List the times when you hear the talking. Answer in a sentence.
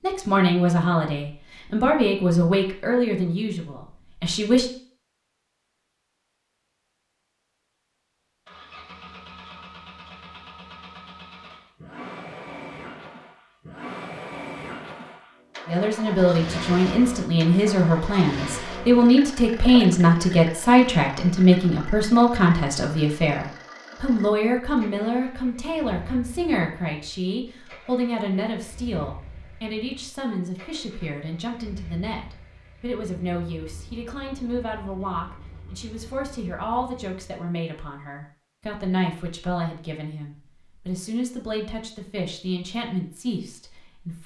The talking can be heard from 0.0 to 4.7 s and from 15.7 to 44.2 s.